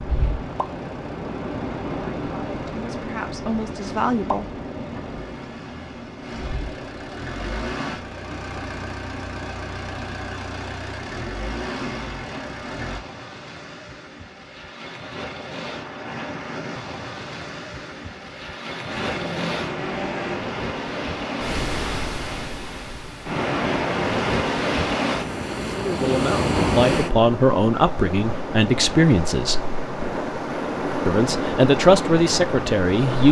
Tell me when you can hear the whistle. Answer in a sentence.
The whistle can't be heard in this clip.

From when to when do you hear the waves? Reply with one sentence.
The waves can be heard from 0.0 to 33.2 s.